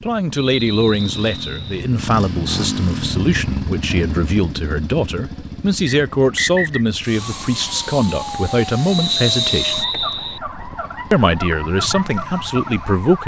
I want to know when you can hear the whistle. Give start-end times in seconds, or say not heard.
0.5-1.9, 5.8-6.8, 8.9-10.4.